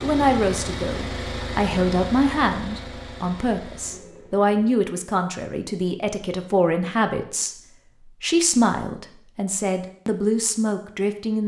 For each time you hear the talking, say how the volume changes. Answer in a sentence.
The talking can be heard from 0.0 to 11.4 s, at a steady volume.